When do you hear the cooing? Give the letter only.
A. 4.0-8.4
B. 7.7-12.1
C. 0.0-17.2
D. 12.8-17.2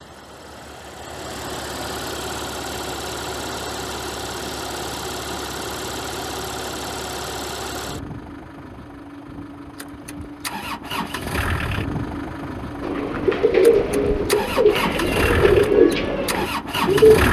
D.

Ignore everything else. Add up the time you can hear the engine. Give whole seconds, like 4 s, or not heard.
17 s.